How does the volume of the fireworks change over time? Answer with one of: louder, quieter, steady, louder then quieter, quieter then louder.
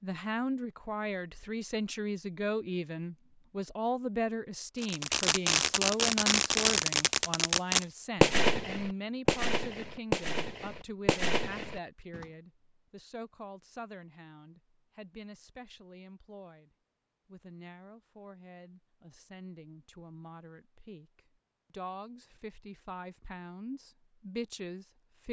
quieter.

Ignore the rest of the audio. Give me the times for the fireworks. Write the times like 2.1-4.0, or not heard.
4.8-12.2.